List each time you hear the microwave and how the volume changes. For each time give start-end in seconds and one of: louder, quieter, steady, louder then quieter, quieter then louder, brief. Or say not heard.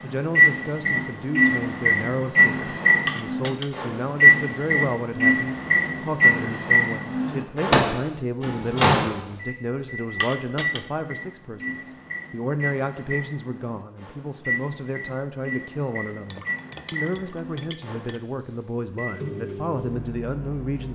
0.0-20.9 quieter.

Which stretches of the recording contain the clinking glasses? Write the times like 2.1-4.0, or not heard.
3.0-3.8, 10.2-10.8, 16.3-18.2.